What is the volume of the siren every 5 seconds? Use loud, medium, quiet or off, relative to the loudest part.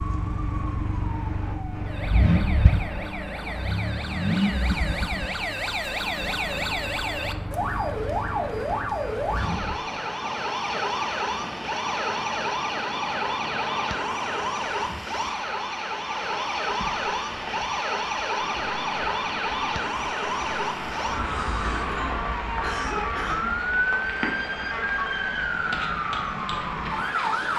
medium, loud, loud, loud, loud, loud.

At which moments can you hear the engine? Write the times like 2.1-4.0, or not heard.
0.0-9.8.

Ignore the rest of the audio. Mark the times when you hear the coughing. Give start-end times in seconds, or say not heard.
21.8-23.6.